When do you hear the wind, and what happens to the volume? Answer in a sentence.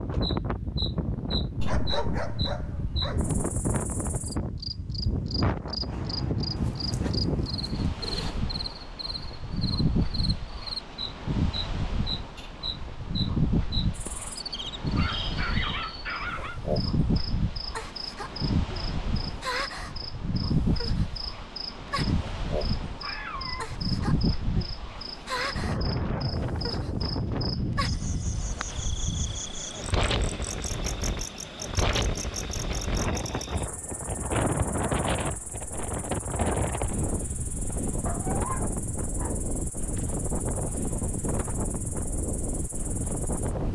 You can hear the wind from 0.0 to 43.6 s, at a steady volume.